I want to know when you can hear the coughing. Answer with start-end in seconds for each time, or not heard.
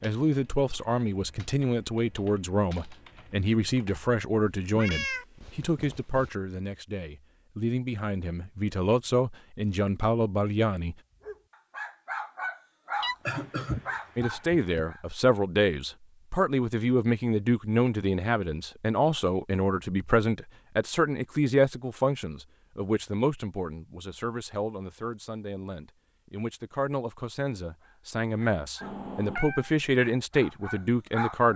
13.2-14.8.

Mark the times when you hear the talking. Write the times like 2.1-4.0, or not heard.
0.0-10.9, 14.2-31.5.